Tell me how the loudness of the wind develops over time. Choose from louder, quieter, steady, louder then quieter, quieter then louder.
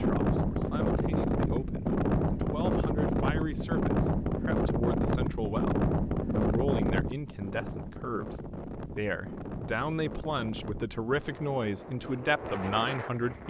quieter.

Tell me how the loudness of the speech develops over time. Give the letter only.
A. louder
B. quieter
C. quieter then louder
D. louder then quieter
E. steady
A.